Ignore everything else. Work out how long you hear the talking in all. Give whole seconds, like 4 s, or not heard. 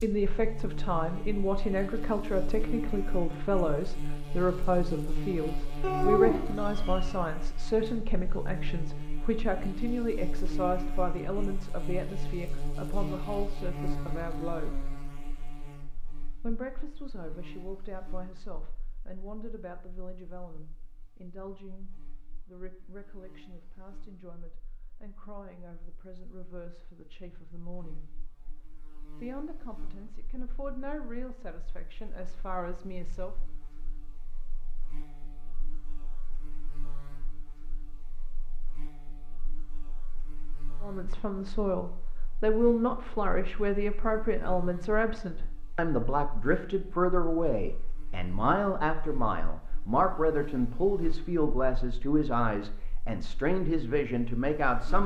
45 s.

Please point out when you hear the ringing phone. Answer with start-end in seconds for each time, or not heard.
not heard.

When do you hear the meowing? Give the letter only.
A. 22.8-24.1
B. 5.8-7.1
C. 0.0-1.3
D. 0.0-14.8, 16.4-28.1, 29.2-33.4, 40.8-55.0
B.